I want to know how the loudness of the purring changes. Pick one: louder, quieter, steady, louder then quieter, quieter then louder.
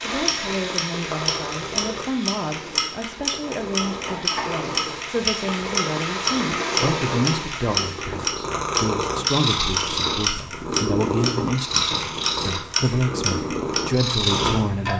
louder.